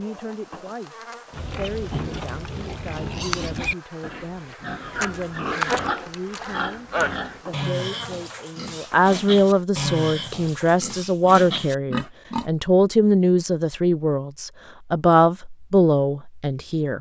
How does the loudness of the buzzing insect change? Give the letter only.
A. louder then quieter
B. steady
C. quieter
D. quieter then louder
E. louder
A.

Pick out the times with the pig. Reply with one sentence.
You can hear the pig from 1.3 to 12.5 s.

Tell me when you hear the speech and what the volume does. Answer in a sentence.
You can hear the speech from 0.0 to 16.9 s, getting louder.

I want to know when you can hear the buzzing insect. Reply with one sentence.
The buzzing insect can be heard from 0.0 to 9.6 s.